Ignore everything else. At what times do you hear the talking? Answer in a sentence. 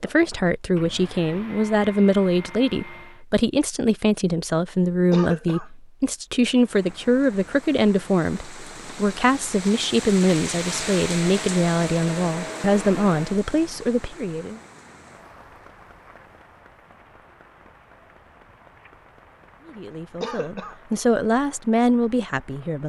You can hear the talking from 0.0 to 14.6 s and from 19.6 to 22.8 s.